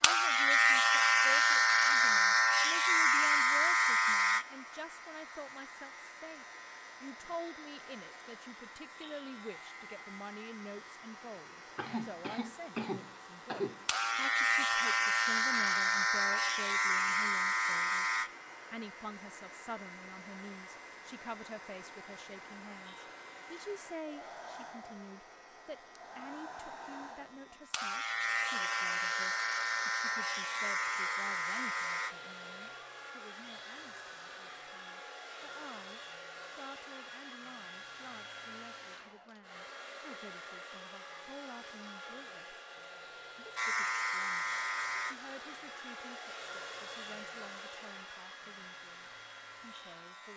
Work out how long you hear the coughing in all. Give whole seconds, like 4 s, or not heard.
2 s.